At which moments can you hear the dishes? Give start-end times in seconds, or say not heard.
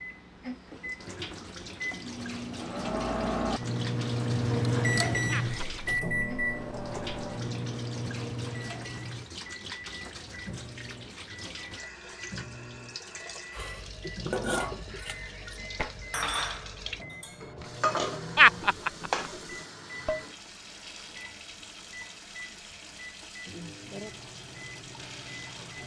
13.5-20.2.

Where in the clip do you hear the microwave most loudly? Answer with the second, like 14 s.
5 s.